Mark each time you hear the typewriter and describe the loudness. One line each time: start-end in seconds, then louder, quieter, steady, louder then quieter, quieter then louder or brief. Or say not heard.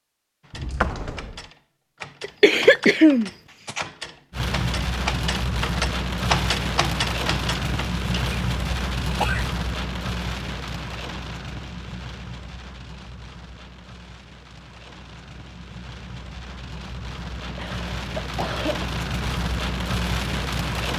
0.4-8.3 louder.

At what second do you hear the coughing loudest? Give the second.
3 s.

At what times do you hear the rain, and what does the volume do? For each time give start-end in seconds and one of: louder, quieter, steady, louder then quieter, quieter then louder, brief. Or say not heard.
4.3-20.9 quieter then louder.